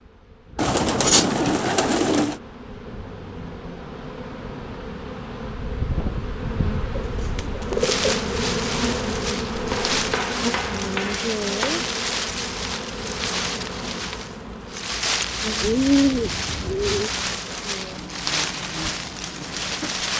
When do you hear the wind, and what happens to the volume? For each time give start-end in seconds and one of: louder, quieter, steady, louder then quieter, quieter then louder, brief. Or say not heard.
5.6-20.1 steady.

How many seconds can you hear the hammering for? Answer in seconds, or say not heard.
2 s.